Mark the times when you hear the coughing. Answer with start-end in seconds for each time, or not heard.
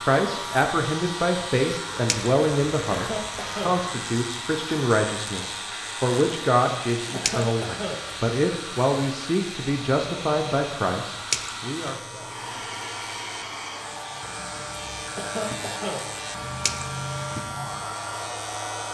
2.9-3.8, 7.1-8.1, 15.2-16.1.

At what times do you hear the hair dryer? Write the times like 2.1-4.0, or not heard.
0.0-18.8.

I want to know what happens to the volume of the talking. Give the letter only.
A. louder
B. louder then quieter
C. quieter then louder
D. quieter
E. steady
E.